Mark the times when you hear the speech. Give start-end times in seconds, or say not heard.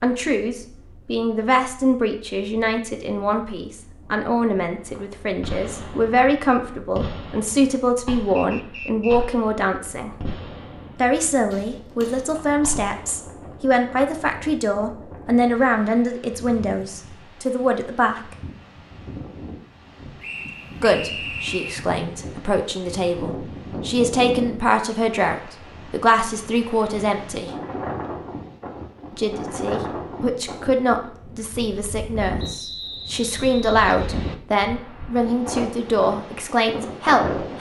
0.0-10.3, 10.9-18.2, 20.8-27.5, 29.1-37.5.